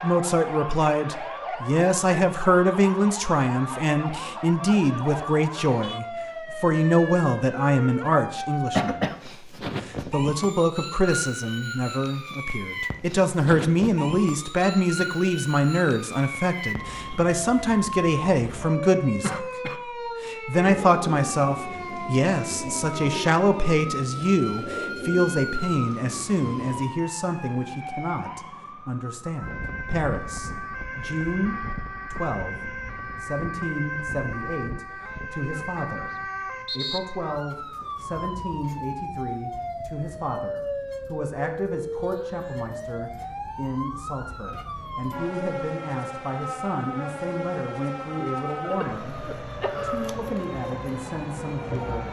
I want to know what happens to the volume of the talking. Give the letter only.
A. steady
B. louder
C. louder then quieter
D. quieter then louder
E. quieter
E.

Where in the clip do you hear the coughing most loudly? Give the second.
9 s.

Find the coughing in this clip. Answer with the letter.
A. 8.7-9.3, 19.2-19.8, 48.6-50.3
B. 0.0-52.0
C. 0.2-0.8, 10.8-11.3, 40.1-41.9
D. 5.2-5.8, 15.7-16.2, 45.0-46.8
A.